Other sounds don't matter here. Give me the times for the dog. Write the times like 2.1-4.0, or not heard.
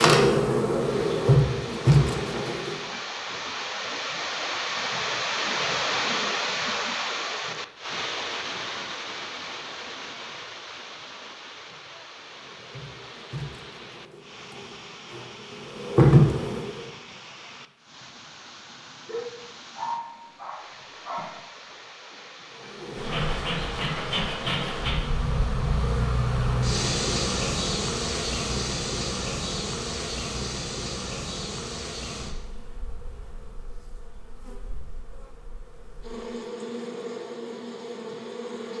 19.1-21.4.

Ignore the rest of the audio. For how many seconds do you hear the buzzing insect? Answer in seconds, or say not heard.
24 s.